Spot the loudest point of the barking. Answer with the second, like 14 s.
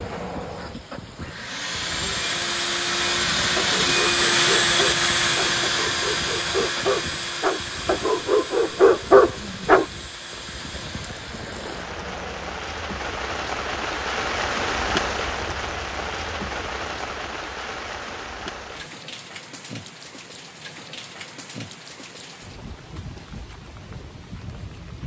9 s.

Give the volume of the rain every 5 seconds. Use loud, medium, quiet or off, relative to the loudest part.
medium, medium, loud, loud, medium.